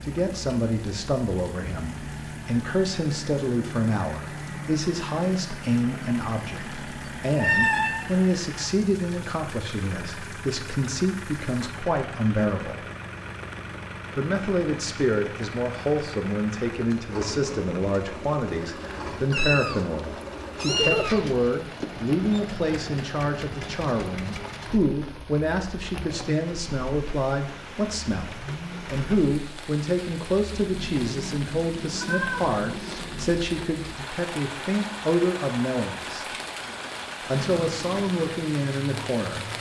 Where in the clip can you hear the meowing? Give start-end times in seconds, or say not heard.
7.3-8.1, 19.3-21.9, 32.0-33.0.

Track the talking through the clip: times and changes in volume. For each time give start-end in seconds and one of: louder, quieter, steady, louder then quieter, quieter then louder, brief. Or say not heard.
0.0-12.8 steady
14.2-36.2 steady
37.2-39.5 brief.